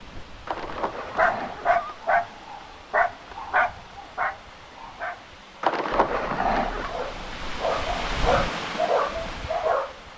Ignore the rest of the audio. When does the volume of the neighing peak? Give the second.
6 s.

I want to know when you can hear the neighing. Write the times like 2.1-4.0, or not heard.
0.5-2.0, 5.6-7.0.